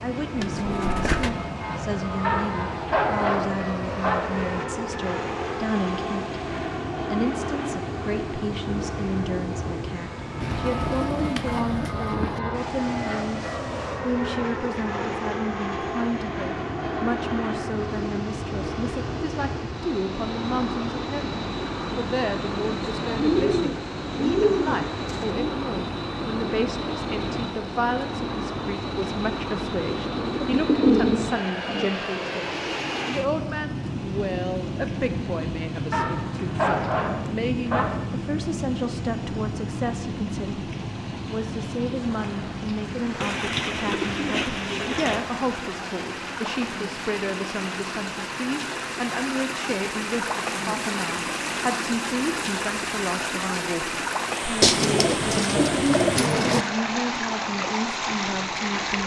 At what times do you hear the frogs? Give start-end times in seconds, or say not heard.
not heard.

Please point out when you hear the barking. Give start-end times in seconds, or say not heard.
2.2-4.2, 35.9-37.9.